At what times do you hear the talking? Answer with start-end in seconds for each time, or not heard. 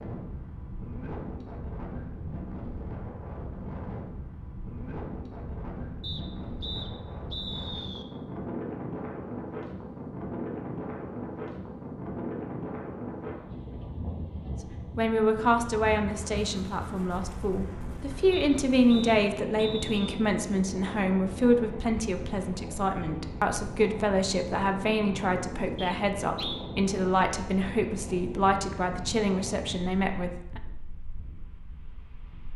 14.9-30.6.